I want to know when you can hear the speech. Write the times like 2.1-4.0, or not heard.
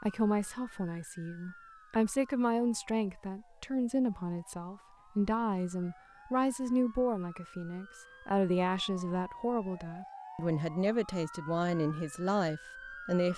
0.0-13.3.